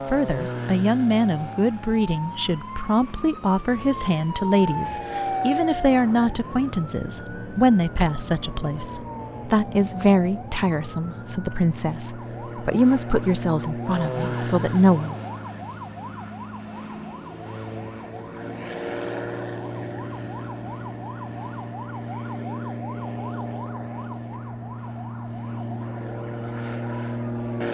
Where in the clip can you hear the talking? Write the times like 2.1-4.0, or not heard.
0.1-15.2.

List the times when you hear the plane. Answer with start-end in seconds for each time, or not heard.
0.0-27.6.